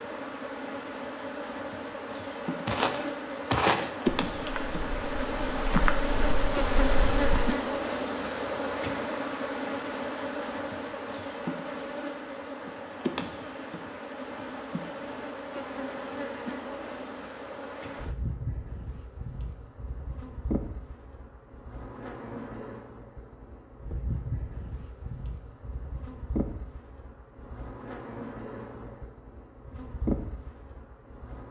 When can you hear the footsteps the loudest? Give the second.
4 s.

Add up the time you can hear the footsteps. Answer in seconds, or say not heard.
5 s.